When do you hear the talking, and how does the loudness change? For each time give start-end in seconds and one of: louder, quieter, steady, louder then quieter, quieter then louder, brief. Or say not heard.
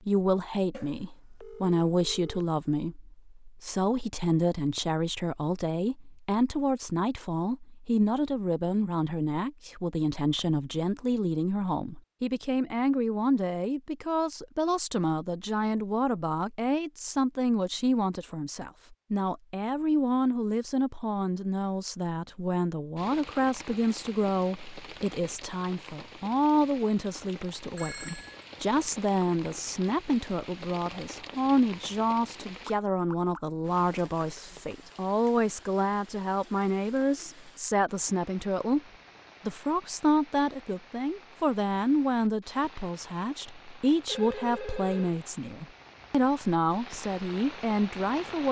0.1-38.8 steady
39.5-48.4 steady.